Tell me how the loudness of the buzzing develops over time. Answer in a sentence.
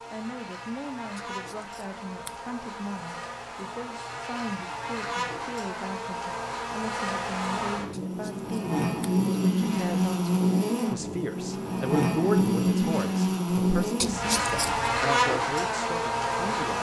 The loudness of the buzzing goes up.